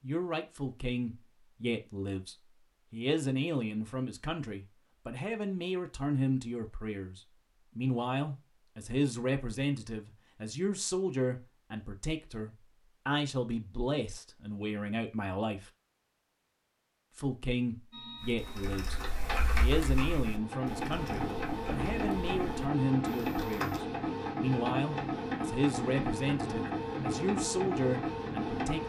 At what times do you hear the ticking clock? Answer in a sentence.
You can't hear the ticking clock here.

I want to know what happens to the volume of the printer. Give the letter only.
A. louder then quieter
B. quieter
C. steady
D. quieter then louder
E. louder
E.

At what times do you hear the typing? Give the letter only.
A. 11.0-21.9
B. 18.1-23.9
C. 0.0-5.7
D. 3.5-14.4
B.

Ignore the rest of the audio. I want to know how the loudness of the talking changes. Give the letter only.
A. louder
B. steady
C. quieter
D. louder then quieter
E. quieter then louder
B.